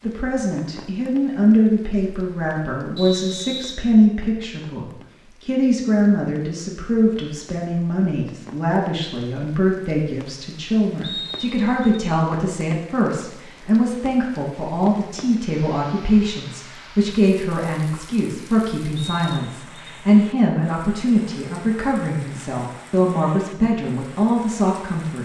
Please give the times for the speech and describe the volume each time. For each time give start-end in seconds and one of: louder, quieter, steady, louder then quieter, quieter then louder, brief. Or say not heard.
0.0-25.2 steady.